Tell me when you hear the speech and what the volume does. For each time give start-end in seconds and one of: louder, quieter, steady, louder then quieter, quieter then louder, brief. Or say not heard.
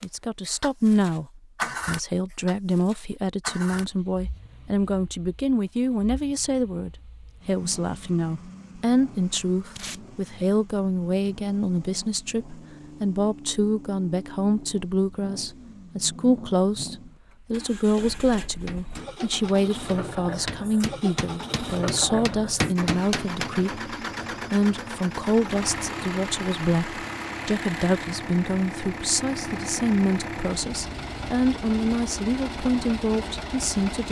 0.0-34.0 steady.